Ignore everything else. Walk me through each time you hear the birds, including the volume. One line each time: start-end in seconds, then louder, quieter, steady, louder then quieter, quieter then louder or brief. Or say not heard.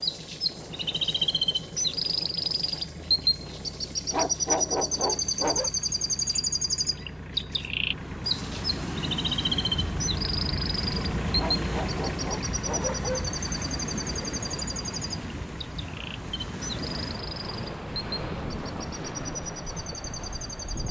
0.0-20.8 quieter.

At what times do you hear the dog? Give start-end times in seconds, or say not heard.
4.1-5.7, 11.3-13.3.